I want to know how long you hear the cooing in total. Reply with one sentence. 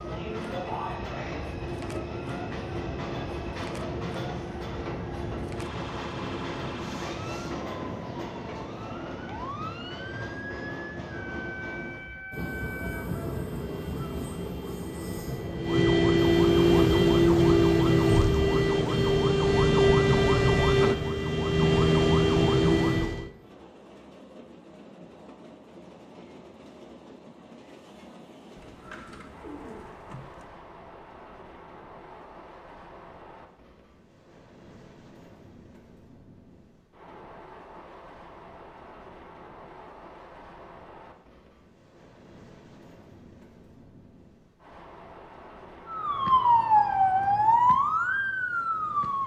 The cooing can be heard for 2 seconds in total.